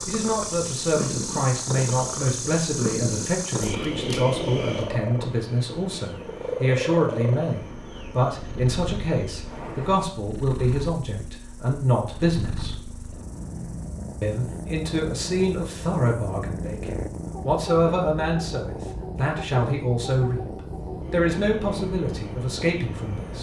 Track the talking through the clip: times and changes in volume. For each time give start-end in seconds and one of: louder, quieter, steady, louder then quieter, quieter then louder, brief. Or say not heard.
0.1-12.9 steady
14.2-23.3 steady.